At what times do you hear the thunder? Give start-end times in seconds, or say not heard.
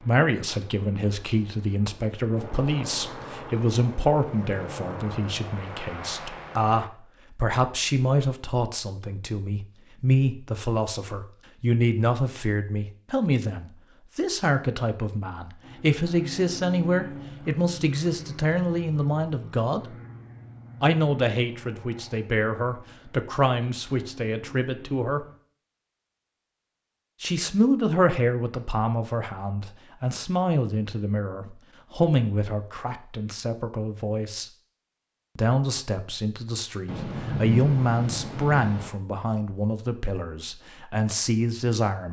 36.9-38.9.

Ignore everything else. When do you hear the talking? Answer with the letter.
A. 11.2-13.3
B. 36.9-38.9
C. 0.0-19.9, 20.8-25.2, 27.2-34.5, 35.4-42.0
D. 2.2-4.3
C.